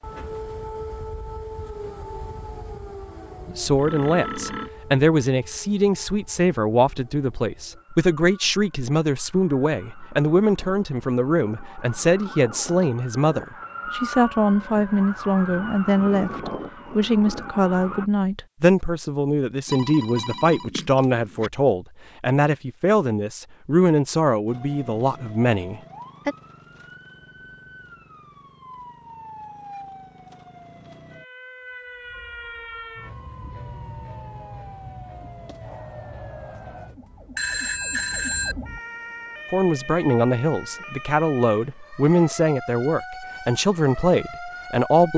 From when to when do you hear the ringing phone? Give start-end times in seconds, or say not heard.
3.7-4.7, 19.6-21.5, 37.4-38.5.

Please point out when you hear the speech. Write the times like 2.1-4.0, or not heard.
3.5-26.4, 39.5-45.1.